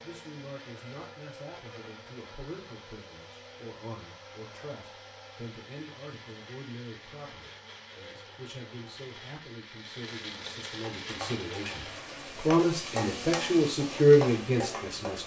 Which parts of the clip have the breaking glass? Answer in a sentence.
You can't hear the breaking glass here.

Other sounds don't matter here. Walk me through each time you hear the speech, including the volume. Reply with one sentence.
The speech can be heard from 0.0 to 15.2 s, getting louder.